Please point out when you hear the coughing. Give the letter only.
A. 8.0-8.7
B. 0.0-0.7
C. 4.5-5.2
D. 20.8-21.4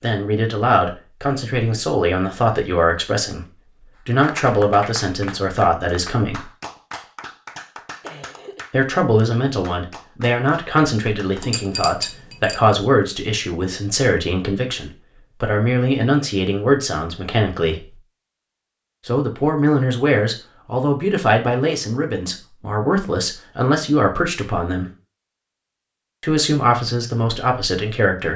A.